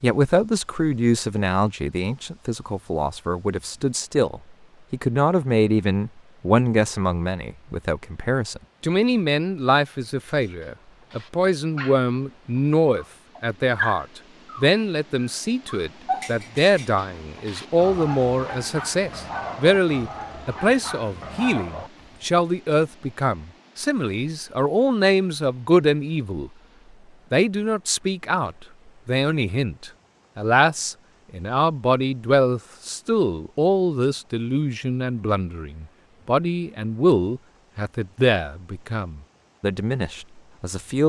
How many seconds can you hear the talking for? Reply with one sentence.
The talking can be heard for 40 seconds in total.